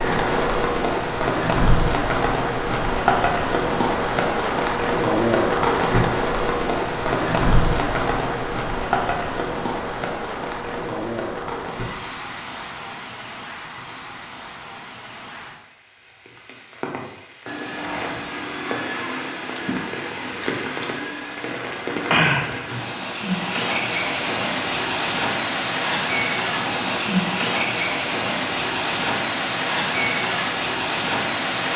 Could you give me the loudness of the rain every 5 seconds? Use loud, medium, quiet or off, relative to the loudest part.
loud, loud, medium, quiet, loud, loud, loud.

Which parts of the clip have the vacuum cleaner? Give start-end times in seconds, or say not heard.
17.4-22.9.